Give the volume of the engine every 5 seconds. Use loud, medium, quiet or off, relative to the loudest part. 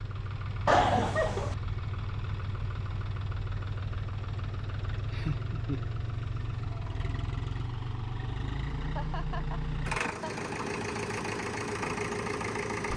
medium, loud, loud.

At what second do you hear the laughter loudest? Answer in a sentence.
The volume of the laughter peaks at 1 second.